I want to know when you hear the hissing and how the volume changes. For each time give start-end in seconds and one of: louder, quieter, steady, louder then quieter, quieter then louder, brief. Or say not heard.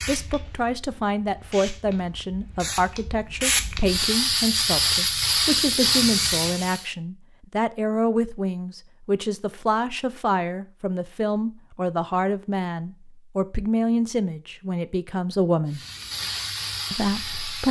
0.0-6.8 louder
15.7-17.6 brief.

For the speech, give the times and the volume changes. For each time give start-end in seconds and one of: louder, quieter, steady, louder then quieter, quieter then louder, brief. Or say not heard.
0.1-15.8 steady
16.9-17.6 brief.